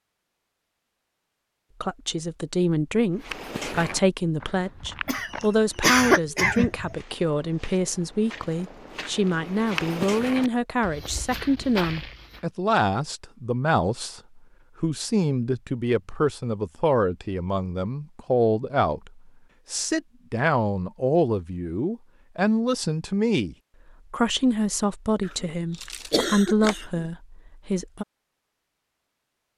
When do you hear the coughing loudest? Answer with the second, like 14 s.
6 s.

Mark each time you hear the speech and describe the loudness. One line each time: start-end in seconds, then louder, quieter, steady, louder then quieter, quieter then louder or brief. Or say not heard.
1.8-28.1 steady.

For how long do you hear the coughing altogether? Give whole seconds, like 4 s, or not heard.
4 s.